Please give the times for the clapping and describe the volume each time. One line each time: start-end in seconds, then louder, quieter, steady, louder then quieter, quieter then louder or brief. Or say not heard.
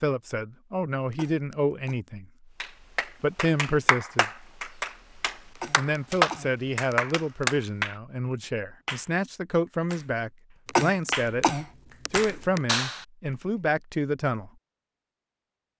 2.6-11.3 louder then quieter
12.1-13.1 brief.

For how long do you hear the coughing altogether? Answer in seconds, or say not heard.
5 s.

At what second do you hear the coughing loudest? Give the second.
11 s.